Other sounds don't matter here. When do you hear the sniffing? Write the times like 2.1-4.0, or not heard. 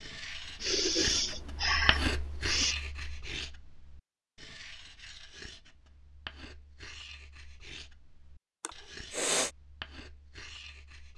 0.6-2.8, 8.6-9.5.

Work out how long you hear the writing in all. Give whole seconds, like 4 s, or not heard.
11 s.